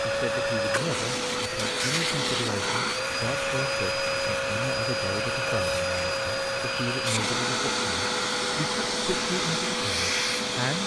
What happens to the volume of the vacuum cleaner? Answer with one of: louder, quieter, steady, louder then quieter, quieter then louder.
steady.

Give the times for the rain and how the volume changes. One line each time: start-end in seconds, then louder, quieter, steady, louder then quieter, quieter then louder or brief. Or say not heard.
not heard.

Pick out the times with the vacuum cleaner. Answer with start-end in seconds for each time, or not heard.
0.0-10.8.